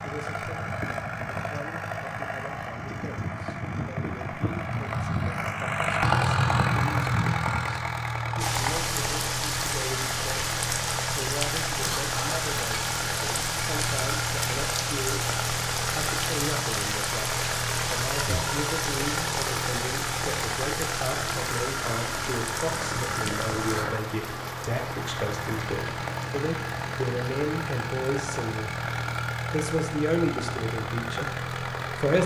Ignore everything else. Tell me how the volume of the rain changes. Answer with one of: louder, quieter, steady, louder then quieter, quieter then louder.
quieter.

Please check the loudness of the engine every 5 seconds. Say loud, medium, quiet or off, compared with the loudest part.
medium, loud, medium, medium, medium, medium, medium.